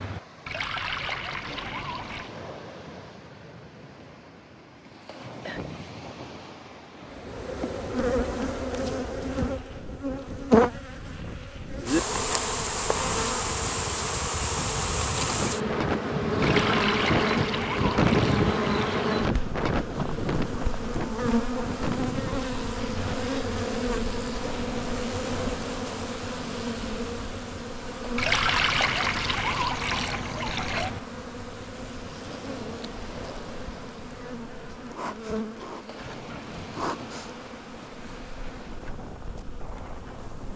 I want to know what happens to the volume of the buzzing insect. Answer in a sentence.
The loudness of the buzzing insect goes down.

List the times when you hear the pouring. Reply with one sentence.
The pouring can be heard from 0.5 to 2.3 s, from 16.4 to 19.1 s and from 28.1 to 30.9 s.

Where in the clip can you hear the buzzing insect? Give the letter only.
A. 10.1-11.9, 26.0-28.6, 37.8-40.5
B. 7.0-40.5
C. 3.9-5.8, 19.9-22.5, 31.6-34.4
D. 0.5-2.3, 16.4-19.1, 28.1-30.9
B.